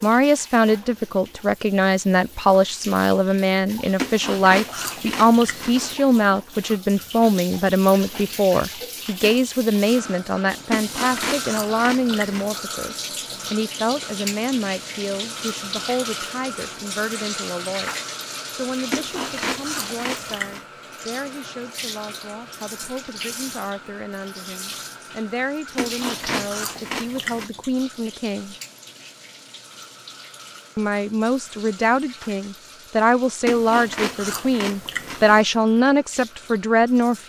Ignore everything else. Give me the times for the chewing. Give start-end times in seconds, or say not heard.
4.0-6.0, 10.7-12.6, 18.9-20.6, 25.8-27.5, 33.5-35.5.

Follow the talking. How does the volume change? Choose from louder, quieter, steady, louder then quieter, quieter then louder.
quieter then louder.